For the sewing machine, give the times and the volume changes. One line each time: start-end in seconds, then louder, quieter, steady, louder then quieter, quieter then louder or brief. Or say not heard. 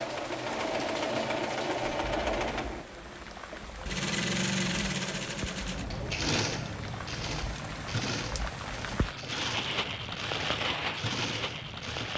0.0-12.1 quieter.